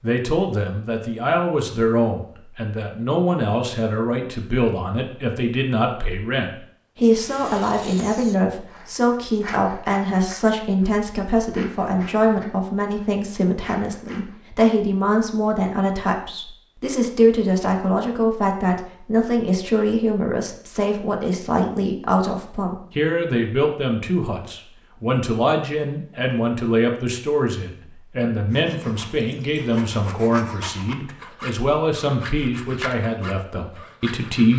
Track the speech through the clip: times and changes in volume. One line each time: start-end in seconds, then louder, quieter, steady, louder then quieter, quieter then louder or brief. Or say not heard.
0.0-34.5 steady.